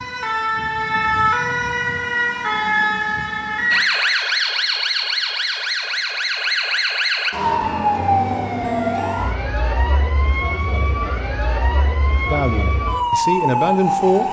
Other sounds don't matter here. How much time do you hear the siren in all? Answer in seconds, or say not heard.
14 s.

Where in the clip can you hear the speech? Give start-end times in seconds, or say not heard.
12.2-14.2.